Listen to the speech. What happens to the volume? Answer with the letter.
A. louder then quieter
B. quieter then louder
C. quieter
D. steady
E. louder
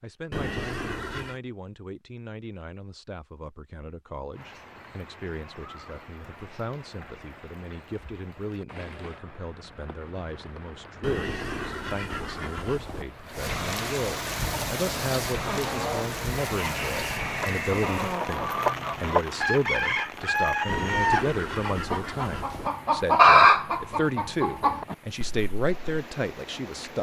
E.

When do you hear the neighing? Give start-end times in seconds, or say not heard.
0.3-1.4, 11.0-13.1, 20.6-22.7.